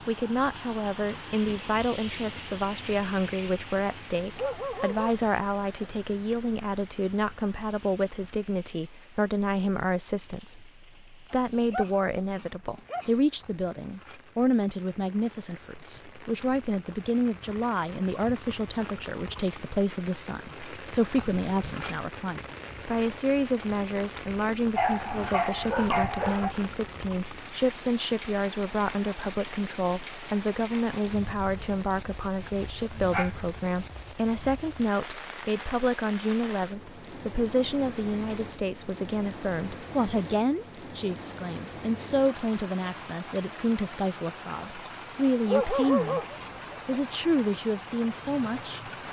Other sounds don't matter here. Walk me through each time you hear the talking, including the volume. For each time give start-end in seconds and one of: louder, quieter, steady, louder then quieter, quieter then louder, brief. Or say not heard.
0.1-46.2 steady
46.9-48.8 brief.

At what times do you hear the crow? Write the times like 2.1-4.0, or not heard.
not heard.